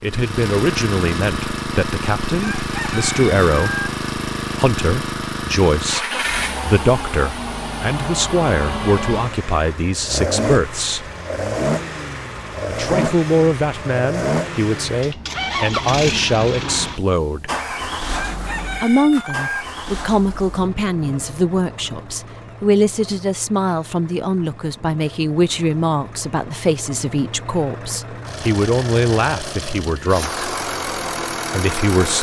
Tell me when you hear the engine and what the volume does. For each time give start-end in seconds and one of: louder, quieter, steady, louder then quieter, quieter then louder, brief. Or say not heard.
0.0-32.1 quieter then louder.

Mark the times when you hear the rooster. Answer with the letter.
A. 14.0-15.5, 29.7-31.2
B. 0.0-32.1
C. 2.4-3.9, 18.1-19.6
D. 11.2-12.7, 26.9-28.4
C.